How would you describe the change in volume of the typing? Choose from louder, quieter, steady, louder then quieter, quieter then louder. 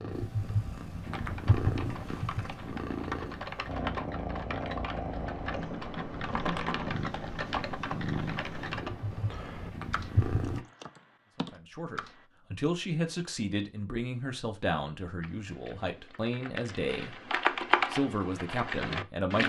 quieter then louder.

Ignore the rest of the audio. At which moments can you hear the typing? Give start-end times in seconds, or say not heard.
1.1-12.2, 15.2-19.4.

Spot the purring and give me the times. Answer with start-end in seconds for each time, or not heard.
0.0-10.6.